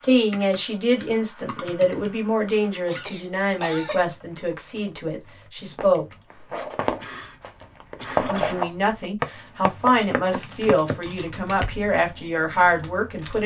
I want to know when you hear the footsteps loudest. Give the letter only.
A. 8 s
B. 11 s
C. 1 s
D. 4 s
A.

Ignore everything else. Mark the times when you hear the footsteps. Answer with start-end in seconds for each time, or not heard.
5.8-11.8.